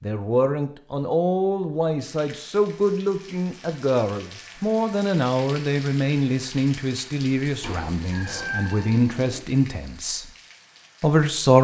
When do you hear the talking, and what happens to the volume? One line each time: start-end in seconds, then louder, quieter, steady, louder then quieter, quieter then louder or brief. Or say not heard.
0.0-10.2 steady
11.0-11.5 brief.